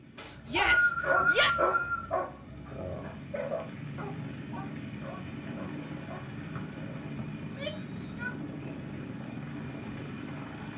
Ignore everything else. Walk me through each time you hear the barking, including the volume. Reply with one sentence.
The barking can be heard from 0.2 to 7.1 s, getting quieter.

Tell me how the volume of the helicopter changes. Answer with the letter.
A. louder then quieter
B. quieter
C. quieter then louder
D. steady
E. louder
E.